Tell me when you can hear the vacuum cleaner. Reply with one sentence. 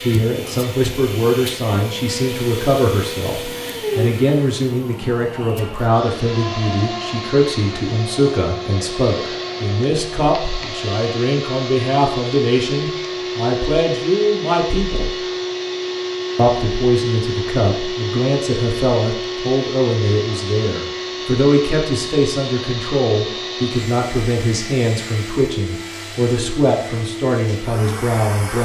The vacuum cleaner can be heard from 0.0 to 28.6 s.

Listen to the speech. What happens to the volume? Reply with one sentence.
The loudness of the speech stays about the same.